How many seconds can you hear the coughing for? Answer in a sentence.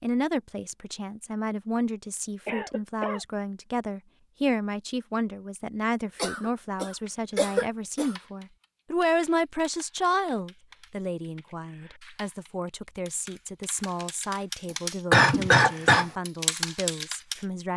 The coughing can be heard for 4 seconds in total.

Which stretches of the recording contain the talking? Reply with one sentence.
The talking can be heard from 0.0 to 17.7 s.